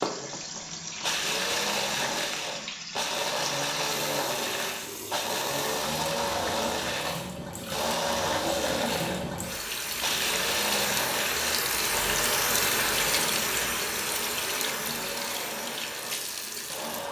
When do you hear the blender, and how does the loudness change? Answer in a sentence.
The blender can be heard from 0.0 to 17.0 s, getting quieter.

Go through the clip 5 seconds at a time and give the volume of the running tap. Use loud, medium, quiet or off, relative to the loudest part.
medium, medium, loud, medium.